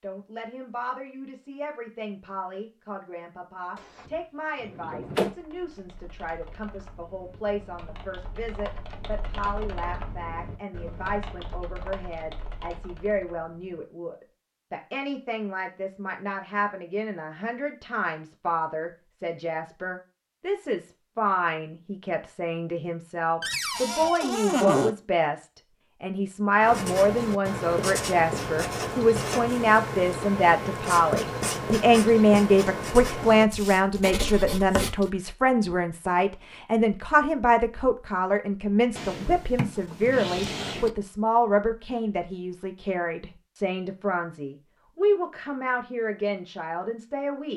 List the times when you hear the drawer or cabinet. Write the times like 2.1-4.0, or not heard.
3.8-5.3, 23.4-24.9, 39.0-40.9.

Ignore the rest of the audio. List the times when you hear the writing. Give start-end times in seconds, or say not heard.
26.6-35.1.